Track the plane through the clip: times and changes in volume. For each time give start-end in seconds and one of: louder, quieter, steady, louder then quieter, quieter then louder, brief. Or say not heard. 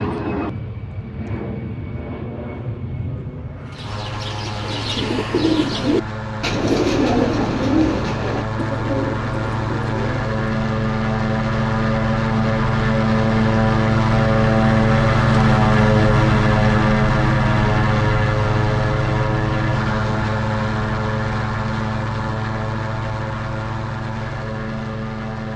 0.0-25.5 louder then quieter.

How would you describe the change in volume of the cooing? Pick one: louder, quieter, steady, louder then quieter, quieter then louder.
louder then quieter.